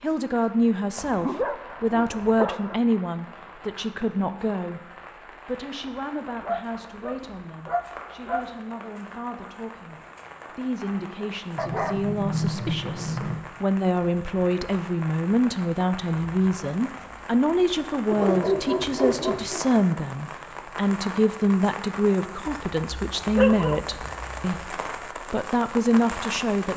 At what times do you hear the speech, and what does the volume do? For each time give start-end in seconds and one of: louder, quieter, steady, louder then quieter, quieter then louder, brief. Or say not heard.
0.0-26.7 quieter then louder.